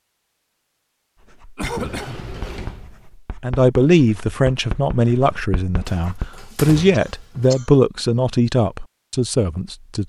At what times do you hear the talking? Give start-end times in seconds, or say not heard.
3.4-10.0.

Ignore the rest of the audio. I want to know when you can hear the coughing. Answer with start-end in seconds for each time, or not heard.
1.6-2.4, 6.9-7.8.